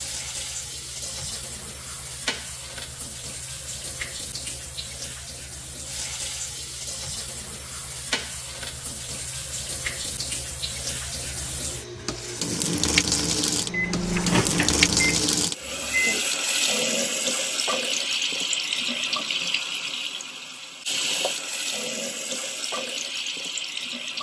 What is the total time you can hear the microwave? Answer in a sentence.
You can hear the microwave for 3 seconds altogether.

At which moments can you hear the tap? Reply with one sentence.
You can hear the tap from 0.0 to 24.1 s.